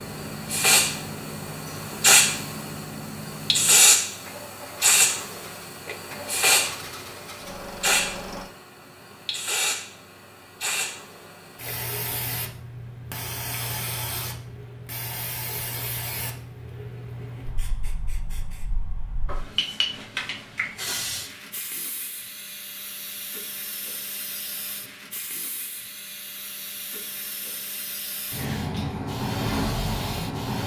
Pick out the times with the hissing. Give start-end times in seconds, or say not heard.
0.0-30.6.